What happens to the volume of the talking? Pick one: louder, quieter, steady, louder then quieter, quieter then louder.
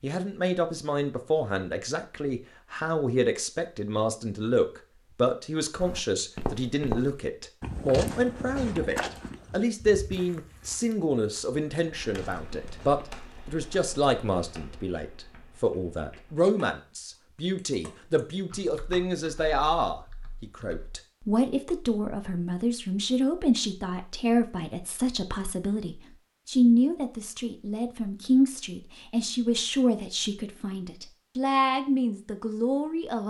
steady.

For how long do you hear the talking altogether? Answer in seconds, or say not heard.
33 s.